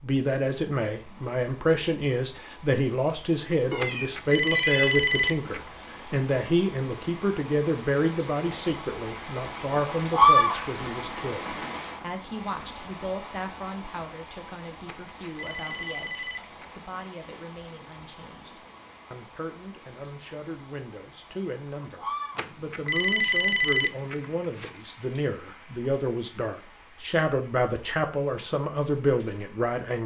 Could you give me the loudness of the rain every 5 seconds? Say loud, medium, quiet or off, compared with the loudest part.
quiet, quiet, loud, quiet, quiet, quiet.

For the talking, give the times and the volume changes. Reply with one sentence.
You can hear the talking from 0.0 to 30.0 s, getting quieter then louder.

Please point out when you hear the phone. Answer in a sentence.
You can hear the phone from 3.8 to 5.7 s, from 14.8 to 16.9 s and from 22.4 to 24.8 s.